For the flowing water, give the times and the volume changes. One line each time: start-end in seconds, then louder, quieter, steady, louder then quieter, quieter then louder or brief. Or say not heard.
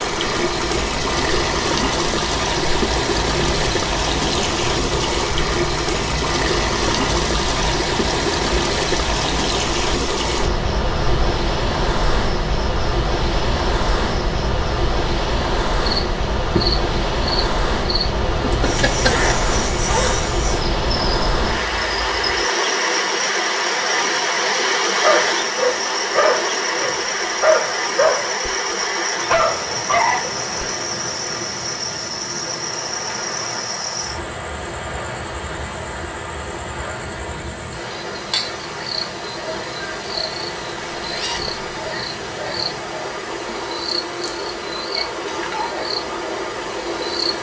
0.0-47.3 quieter.